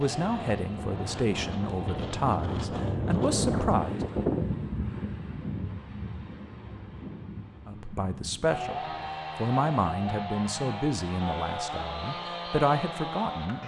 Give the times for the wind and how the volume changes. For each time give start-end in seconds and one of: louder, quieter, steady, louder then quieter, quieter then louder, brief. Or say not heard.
0.0-9.1 louder then quieter.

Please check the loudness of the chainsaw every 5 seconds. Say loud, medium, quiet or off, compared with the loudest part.
medium, loud, loud.